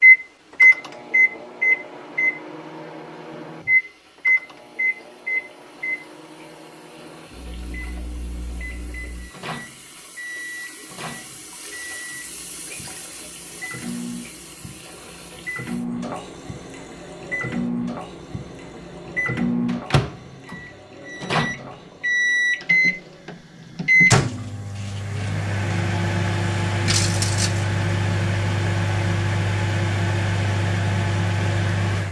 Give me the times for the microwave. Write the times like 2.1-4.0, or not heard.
0.0-32.0.